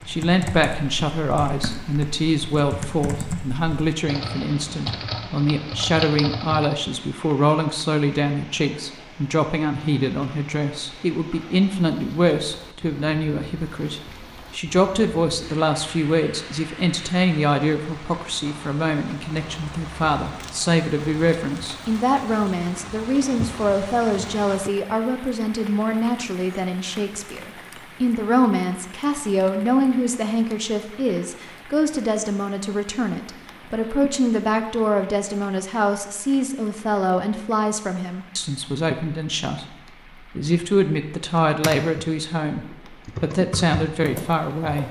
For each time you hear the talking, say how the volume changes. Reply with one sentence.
The talking can be heard from 0.1 to 44.8 s, at a steady volume.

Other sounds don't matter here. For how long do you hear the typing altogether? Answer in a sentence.
The typing can be heard for 10 seconds in total.